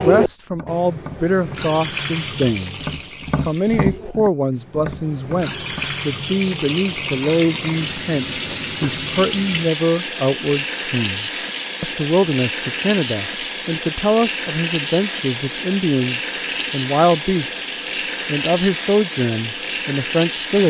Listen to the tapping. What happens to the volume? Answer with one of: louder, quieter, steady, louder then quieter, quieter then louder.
louder then quieter.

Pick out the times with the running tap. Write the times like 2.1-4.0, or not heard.
0.0-20.6.